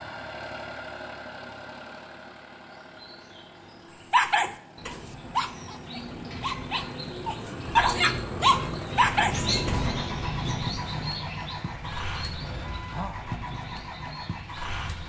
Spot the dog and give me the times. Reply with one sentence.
You can hear the dog from 4.0 to 9.9 s.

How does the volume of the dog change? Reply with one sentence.
The loudness of the dog goes down, then up.